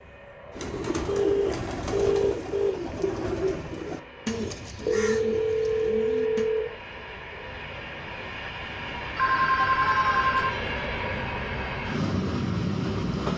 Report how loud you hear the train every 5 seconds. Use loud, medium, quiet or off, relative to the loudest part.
quiet, medium, loud.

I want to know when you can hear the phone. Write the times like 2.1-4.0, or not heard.
1.1-2.7, 4.8-6.7, 9.2-10.5.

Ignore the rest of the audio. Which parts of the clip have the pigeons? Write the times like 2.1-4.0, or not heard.
0.5-6.5.